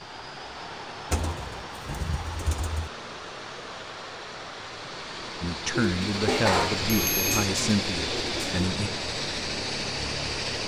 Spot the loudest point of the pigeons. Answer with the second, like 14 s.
6 s.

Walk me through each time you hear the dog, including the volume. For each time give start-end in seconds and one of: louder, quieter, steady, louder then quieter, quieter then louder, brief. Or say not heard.
not heard.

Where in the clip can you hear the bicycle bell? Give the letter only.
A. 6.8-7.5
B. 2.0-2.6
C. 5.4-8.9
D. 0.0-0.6
A.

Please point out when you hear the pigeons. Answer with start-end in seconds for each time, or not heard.
1.1-2.9, 5.7-8.6.